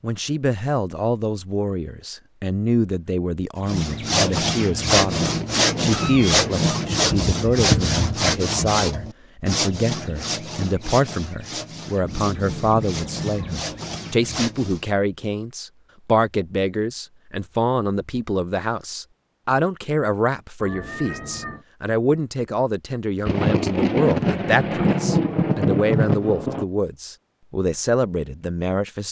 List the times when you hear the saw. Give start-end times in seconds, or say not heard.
3.6-14.8.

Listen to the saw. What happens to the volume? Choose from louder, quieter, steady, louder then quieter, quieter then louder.
quieter.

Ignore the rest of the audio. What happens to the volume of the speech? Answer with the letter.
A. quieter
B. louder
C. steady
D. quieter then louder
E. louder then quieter
C.